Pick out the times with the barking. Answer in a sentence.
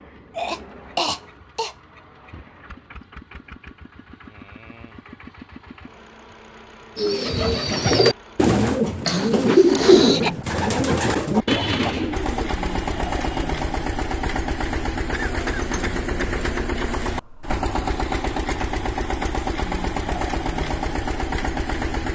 You can't hear the barking here.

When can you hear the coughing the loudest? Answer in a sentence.
The volume of the coughing peaks at 10 seconds.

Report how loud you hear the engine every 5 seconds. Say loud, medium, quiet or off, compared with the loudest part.
quiet, quiet, loud, loud, loud.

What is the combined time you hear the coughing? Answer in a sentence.
You can hear the coughing for 4 seconds altogether.